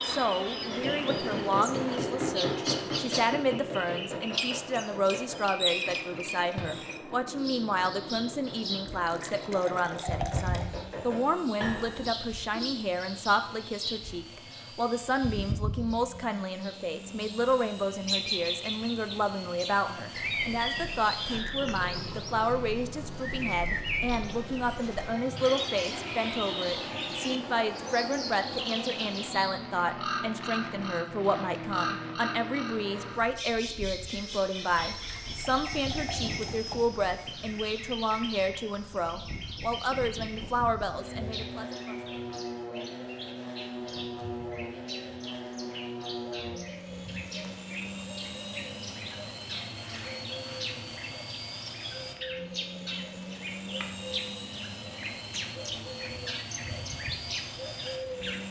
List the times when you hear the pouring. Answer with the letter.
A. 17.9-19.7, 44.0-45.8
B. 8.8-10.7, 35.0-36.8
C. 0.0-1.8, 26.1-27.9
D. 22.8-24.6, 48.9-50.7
B.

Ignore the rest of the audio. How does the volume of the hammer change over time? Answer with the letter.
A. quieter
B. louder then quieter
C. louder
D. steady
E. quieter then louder
E.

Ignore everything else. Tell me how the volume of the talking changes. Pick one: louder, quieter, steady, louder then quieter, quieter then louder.
steady.